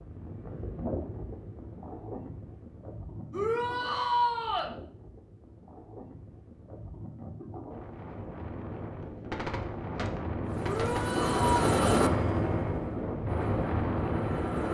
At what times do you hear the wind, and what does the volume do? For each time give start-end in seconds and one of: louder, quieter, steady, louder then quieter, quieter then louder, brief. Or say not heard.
0.0-14.6 quieter then louder.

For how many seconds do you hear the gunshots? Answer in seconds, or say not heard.
2 s.